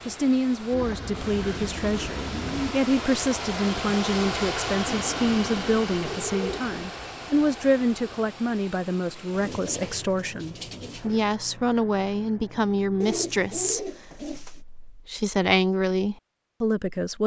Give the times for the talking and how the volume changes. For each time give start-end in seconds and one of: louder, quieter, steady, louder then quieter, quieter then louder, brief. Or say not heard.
0.1-17.2 steady.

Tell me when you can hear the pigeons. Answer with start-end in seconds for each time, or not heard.
0.7-2.8, 4.8-6.9, 9.3-11.3, 13.0-14.6.